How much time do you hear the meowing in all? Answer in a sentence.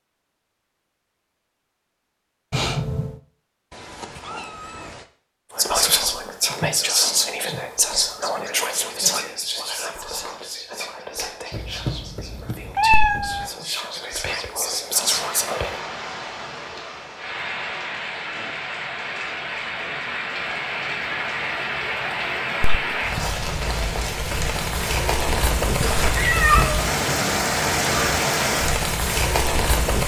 You can hear the meowing for 4 seconds altogether.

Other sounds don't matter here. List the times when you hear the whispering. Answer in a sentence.
You can hear the whispering from 5.5 to 15.8 s.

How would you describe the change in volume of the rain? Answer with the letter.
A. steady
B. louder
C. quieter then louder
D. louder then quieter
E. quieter
B.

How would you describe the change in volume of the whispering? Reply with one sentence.
The volume of the whispering goes down, then up.